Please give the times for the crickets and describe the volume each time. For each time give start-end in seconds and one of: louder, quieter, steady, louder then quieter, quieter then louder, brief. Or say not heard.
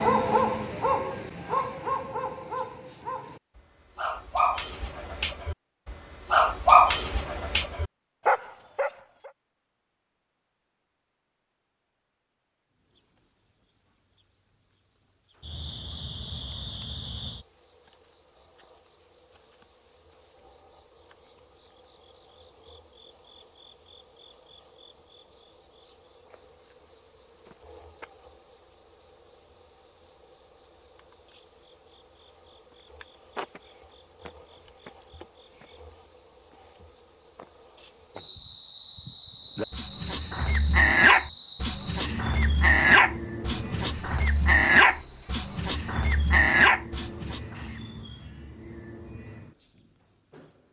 12.7-50.6 louder then quieter.